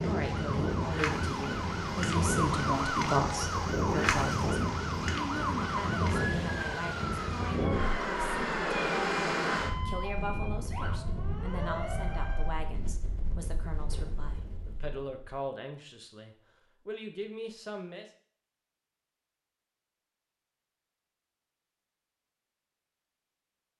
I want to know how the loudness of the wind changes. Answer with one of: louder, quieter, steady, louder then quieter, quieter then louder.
quieter.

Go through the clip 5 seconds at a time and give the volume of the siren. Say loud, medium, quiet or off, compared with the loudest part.
loud, loud, medium, off, off.